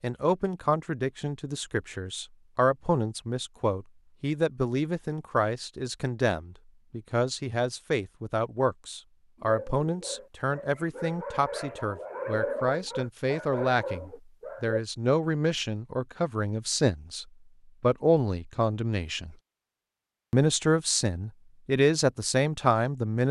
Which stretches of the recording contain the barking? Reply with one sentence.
The barking can be heard from 9.4 to 14.8 s.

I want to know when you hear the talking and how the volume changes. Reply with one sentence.
You can hear the talking from 0.0 to 19.4 s, at a steady volume; and briefly from 20.3 to 23.2 s.